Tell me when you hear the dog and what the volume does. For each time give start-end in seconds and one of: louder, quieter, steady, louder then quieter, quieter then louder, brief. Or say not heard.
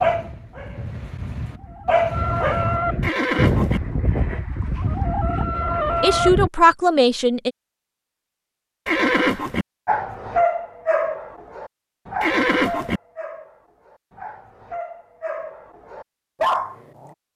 0.0-2.8 brief
9.8-17.1 quieter then louder.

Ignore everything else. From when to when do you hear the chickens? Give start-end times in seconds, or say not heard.
0.0-6.8.